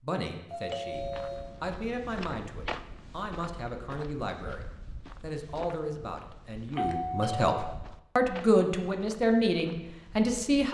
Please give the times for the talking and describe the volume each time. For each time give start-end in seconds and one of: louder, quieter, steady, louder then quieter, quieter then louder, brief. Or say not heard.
0.0-10.6 louder.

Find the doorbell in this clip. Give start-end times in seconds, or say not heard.
0.5-1.5, 6.7-7.5.